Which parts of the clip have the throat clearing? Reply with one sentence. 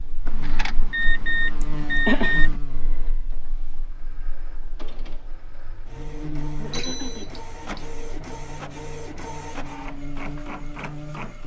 The throat clearing can be heard from 1.6 to 2.5 s and from 6.5 to 7.2 s.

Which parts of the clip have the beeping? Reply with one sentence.
You can hear the beeping from 0.2 to 2.6 s and from 6.7 to 7.7 s.